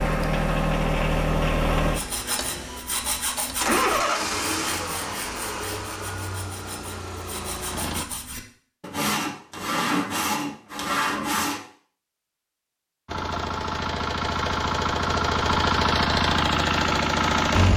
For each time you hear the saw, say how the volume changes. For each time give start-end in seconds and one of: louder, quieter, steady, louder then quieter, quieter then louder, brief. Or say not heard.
1.9-11.6 quieter then louder.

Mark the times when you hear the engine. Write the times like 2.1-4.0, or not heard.
0.0-8.1, 13.1-17.7.